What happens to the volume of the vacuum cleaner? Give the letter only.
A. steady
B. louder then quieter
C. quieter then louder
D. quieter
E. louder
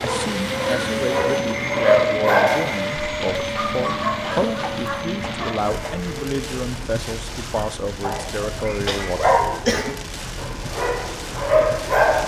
D.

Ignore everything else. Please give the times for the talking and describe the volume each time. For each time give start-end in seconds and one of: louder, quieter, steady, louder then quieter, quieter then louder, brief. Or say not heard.
0.0-9.4 steady.